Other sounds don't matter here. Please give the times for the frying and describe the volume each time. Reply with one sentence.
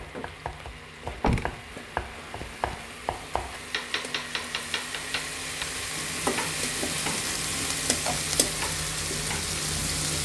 The frying can be heard from 0.0 to 10.2 s, getting louder.